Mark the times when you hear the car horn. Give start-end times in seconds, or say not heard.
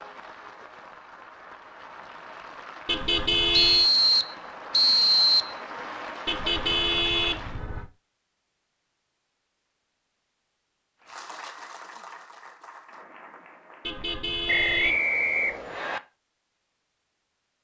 2.9-3.9, 6.2-7.9, 13.8-15.0.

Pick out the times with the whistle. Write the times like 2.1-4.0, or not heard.
3.5-5.5, 14.4-16.0.